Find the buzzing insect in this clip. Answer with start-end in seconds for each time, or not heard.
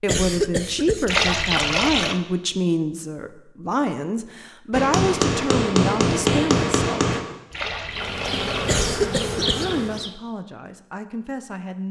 7.8-10.2.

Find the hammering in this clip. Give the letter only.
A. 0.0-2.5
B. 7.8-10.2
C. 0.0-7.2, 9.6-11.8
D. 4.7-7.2
D.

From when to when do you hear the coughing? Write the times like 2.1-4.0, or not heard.
0.1-1.1, 8.7-9.7.